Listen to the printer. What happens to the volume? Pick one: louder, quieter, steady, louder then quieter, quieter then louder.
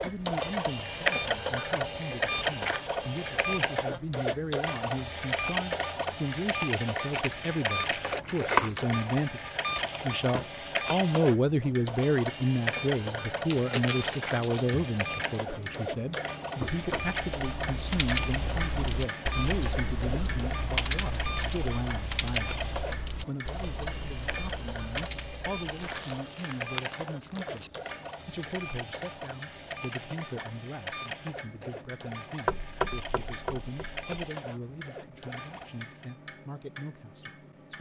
quieter.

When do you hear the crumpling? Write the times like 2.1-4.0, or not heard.
7.0-8.9, 13.4-15.7, 25.8-27.7.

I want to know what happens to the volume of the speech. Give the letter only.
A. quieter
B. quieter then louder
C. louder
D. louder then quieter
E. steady
D.